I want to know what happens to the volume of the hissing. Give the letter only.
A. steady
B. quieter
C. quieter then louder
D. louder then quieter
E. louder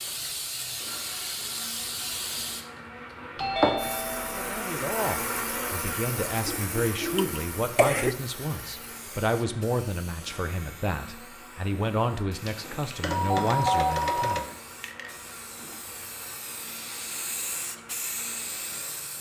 C.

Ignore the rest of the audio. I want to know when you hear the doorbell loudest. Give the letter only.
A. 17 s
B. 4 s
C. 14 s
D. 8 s
C.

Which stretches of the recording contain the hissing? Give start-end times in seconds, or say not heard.
0.0-19.1.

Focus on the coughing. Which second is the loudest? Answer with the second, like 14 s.
8 s.